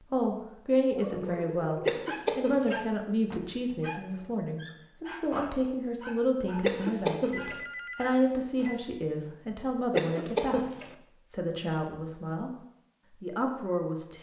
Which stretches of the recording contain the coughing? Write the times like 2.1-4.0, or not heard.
1.9-2.9, 6.6-7.7, 9.9-10.9.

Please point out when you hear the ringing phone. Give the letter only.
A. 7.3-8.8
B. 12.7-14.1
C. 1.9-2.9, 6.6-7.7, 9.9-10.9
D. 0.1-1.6
A.